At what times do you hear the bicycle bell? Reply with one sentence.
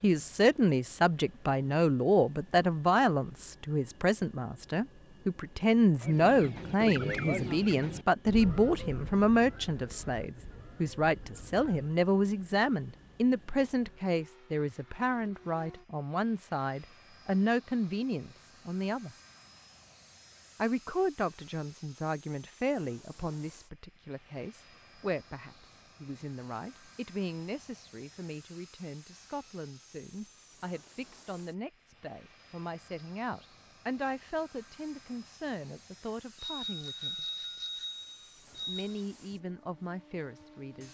The bicycle bell can be heard from 36.4 to 39.0 s.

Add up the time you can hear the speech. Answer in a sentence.
The speech can be heard for 38 seconds in total.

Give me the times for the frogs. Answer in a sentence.
The frogs can't be heard in this clip.